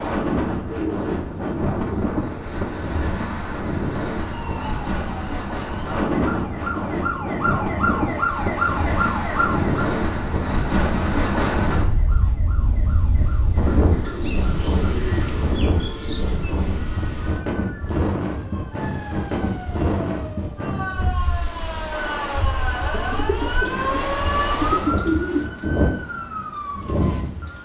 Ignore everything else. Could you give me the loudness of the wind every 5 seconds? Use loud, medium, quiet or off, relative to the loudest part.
loud, loud, loud, loud, medium, loud.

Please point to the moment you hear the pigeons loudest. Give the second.
25 s.